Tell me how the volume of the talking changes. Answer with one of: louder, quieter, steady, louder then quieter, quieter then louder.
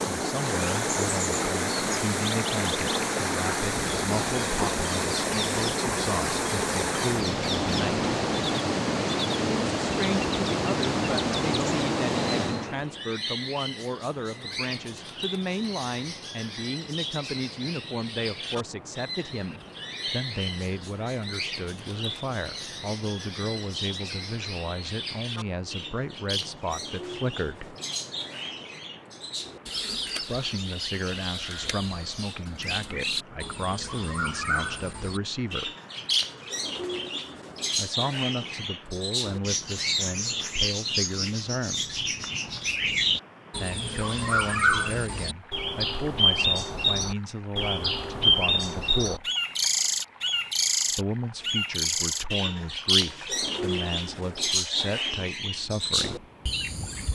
steady.